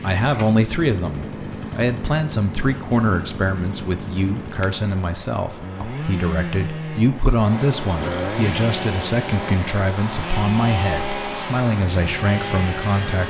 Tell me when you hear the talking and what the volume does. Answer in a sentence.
You can hear the talking from 0.0 to 13.2 s, at a steady volume.